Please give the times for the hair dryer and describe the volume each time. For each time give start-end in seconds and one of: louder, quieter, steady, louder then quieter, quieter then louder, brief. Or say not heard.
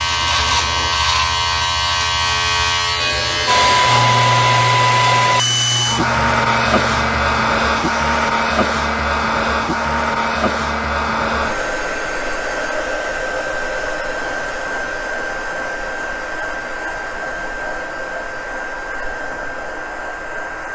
3.5-20.7 quieter.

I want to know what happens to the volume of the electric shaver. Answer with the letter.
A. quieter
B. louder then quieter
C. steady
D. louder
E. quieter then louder
A.